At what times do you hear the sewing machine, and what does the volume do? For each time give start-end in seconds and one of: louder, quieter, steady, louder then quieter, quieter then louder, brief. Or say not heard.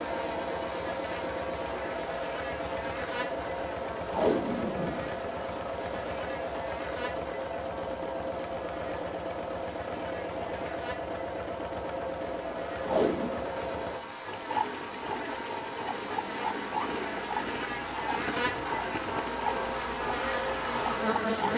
0.0-21.5 steady.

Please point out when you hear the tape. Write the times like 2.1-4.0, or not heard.
4.0-6.0, 12.8-13.3.